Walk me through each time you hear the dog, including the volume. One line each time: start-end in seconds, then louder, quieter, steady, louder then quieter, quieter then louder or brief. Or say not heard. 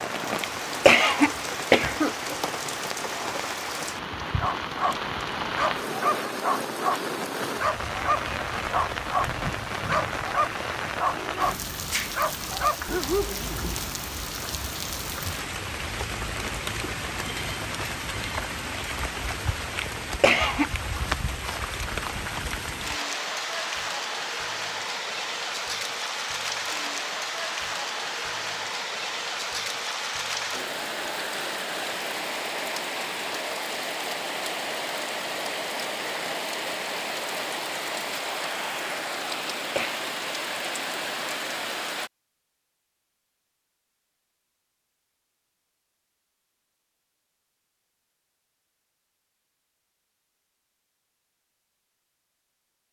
4.2-14.0 steady.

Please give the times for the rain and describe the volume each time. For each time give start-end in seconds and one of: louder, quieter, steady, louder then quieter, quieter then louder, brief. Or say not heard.
0.0-42.1 steady.